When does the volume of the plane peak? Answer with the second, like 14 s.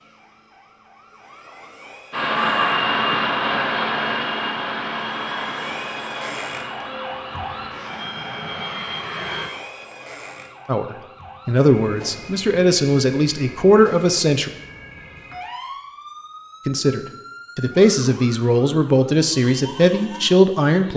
3 s.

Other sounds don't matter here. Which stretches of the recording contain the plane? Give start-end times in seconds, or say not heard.
2.1-9.5.